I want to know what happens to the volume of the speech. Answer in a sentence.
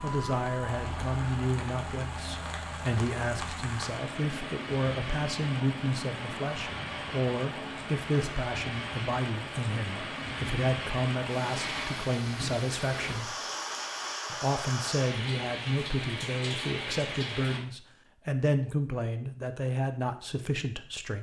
The loudness of the speech stays about the same.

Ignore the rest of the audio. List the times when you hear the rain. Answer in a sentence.
The rain can be heard from 0.0 to 17.6 s.